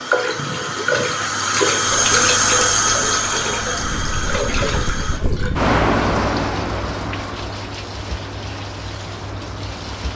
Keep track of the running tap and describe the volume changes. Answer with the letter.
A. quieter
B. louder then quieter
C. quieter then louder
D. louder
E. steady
A.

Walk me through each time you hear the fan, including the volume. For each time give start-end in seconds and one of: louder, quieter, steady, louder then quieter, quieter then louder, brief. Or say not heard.
0.0-10.1 louder then quieter.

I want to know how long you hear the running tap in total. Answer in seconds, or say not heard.
10 s.